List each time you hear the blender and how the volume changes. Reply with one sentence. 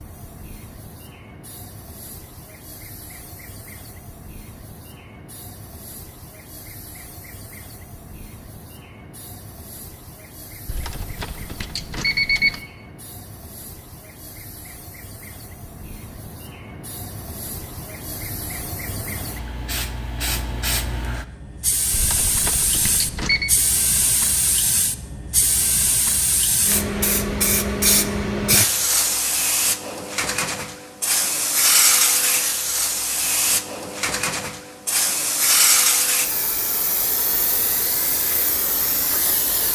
You can't hear the blender here.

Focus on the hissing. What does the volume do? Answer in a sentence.
The loudness of the hissing goes up.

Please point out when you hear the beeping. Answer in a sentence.
The beeping can be heard from 10.7 to 12.6 s and from 21.9 to 23.5 s.